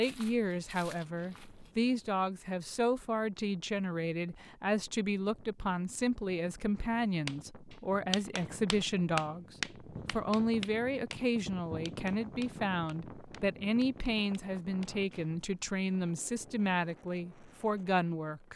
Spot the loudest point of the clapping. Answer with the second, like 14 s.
9 s.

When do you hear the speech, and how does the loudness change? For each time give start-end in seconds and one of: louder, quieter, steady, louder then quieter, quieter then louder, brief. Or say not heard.
0.0-18.5 steady.